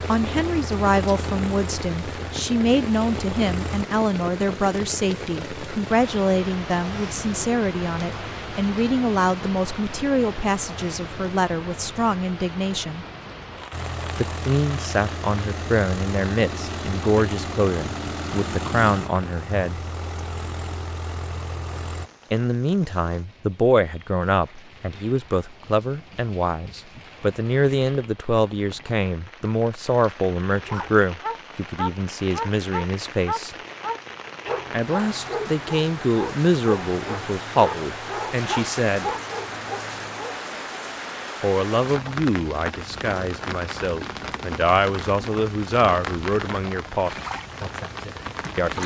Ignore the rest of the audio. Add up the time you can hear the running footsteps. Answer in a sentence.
You can't hear the running footsteps here.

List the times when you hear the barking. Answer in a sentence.
The barking can be heard from 30.6 to 40.4 s.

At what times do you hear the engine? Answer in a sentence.
You can hear the engine from 0.0 to 3.9 s and from 13.7 to 22.1 s.